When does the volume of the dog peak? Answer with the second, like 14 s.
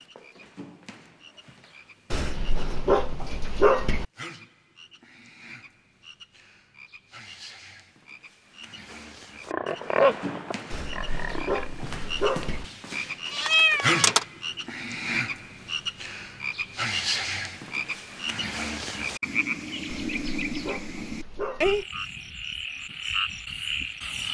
4 s.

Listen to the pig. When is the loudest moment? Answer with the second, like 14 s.
10 s.